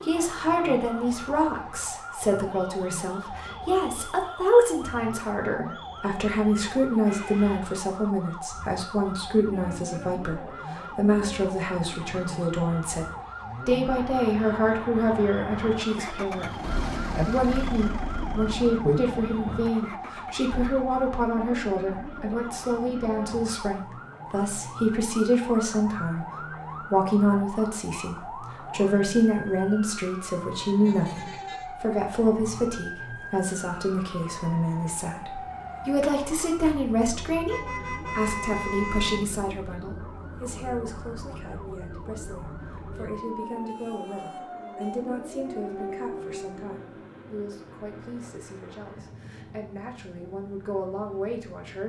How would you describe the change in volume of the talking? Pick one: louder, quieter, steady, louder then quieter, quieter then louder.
quieter.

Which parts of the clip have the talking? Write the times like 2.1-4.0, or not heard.
0.1-13.1, 13.7-51.8.